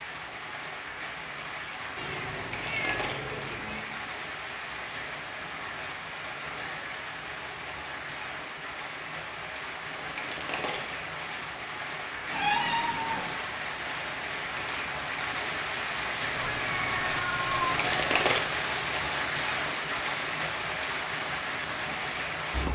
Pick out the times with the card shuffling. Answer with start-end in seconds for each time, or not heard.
2.3-3.2, 9.9-10.8, 17.6-18.4.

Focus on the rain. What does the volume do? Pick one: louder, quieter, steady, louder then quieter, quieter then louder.
louder.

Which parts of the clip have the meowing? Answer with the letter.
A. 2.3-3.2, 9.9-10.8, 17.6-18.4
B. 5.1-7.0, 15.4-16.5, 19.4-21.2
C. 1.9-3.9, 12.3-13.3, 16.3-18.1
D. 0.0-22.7
C.